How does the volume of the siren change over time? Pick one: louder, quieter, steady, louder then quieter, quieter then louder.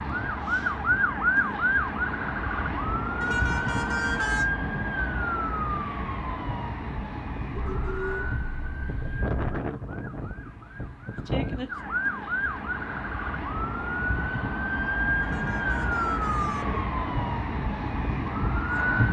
quieter then louder.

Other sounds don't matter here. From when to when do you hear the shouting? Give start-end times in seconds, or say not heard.
not heard.